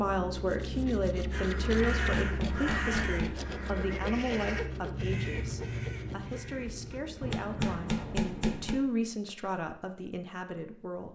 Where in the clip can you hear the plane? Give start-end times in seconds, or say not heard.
0.0-8.2.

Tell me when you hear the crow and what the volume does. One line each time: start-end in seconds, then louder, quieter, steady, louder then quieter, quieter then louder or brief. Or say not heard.
1.3-7.8 quieter.